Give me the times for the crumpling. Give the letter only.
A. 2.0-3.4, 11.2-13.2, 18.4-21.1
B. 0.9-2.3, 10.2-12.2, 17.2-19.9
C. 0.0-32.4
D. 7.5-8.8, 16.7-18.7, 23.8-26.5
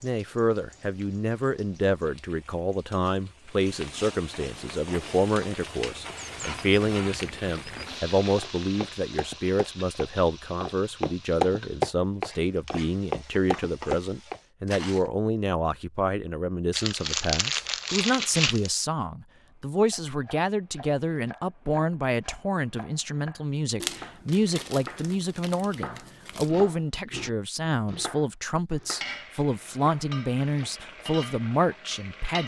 D.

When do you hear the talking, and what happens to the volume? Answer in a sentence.
You can hear the talking from 0.0 to 32.4 s, at a steady volume.